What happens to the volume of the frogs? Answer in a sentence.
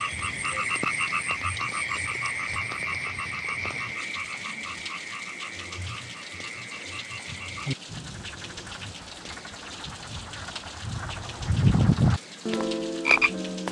The volume of the frogs goes down, then up.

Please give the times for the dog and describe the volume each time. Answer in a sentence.
You can't hear the dog here.